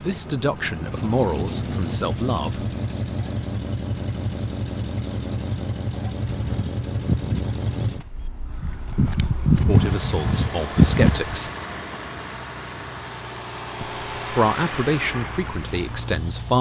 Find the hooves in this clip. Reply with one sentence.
You can hear the hooves from 6.2 to 11.4 s.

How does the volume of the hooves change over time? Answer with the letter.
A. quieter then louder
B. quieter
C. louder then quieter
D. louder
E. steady
A.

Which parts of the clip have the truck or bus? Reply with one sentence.
You can hear the truck or bus from 0.0 to 16.5 s.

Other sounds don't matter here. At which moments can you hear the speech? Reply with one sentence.
The speech can be heard from 0.0 to 2.7 s, from 9.7 to 11.5 s and from 13.8 to 16.5 s.